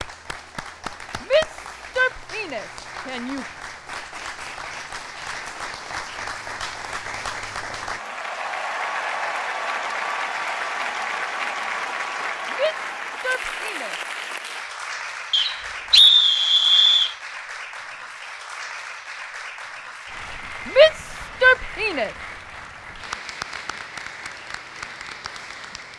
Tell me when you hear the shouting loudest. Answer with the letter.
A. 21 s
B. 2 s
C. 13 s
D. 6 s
A.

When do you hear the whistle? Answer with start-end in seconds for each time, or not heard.
15.3-17.1.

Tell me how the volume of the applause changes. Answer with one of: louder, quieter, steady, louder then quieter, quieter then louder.
louder then quieter.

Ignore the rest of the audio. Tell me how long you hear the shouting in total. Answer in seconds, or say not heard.
5 s.